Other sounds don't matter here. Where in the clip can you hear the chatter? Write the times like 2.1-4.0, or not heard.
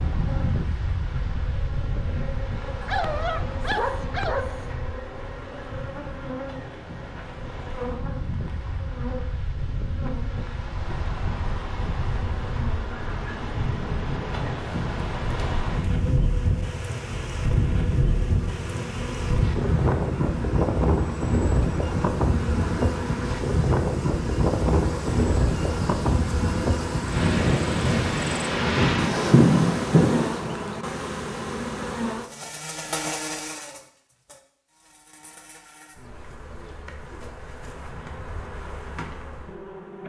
not heard.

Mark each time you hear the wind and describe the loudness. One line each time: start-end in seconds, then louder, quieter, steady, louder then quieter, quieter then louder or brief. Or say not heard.
0.0-30.6 louder.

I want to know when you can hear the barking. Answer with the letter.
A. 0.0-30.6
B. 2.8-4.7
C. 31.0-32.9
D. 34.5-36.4
B.